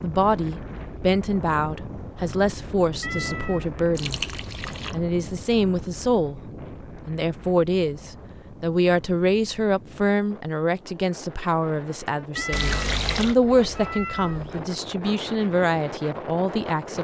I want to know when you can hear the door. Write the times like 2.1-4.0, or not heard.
not heard.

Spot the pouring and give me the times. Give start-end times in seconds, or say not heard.
4.0-5.0, 12.5-13.3.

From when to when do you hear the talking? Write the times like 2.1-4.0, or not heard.
0.0-4.2, 4.9-6.4, 7.0-17.0.